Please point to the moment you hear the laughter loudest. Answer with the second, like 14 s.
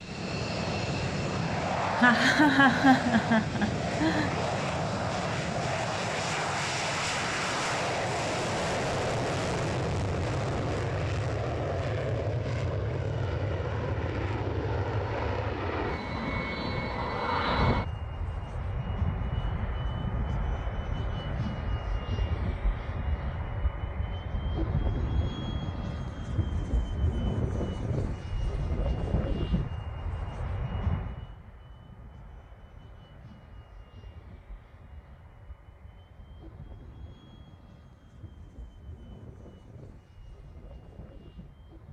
3 s.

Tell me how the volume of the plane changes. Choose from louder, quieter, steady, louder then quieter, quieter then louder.
quieter.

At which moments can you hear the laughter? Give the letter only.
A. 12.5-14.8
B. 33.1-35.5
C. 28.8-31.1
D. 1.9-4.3
D.